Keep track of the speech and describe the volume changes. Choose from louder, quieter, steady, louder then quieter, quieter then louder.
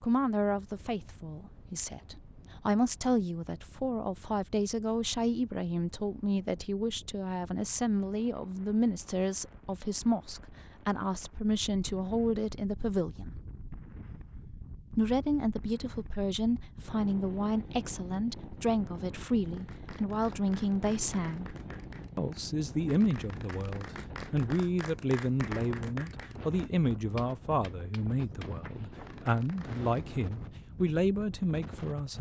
steady.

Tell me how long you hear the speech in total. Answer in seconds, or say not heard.
30 s.